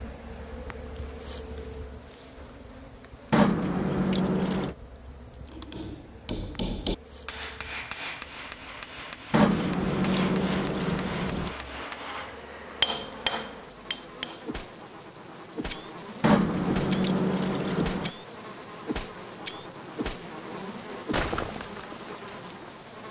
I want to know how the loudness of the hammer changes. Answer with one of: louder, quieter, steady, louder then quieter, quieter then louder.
louder.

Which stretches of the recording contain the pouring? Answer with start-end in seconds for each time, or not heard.
3.3-4.8, 9.3-11.6, 16.2-18.1.